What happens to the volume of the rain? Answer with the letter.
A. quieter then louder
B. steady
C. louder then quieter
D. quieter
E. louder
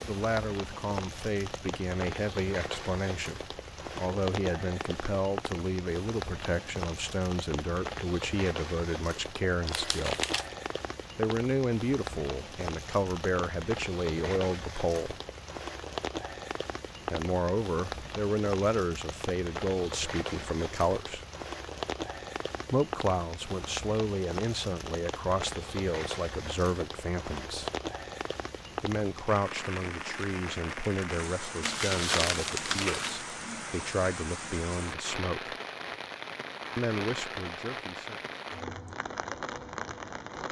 B.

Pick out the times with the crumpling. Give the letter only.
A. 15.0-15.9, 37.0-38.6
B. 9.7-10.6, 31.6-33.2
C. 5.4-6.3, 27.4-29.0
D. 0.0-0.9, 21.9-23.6
B.